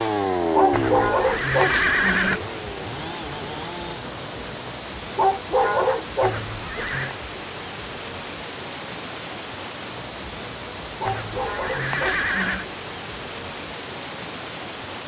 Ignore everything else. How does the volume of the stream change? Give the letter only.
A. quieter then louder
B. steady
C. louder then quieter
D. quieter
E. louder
B.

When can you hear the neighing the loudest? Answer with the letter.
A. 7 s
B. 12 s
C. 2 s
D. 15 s
C.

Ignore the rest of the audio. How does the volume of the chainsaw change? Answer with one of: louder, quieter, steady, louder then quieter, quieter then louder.
quieter.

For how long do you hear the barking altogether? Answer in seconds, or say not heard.
4 s.